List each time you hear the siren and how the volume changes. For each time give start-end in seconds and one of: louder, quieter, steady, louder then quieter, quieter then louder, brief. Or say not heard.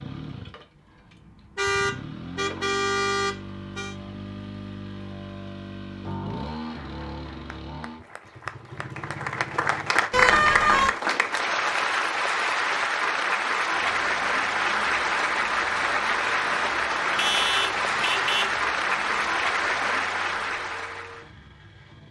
not heard.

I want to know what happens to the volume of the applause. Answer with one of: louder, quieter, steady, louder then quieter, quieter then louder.
louder.